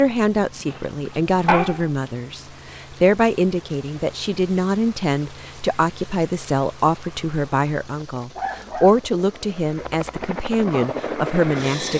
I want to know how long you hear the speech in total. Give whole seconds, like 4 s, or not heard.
12 s.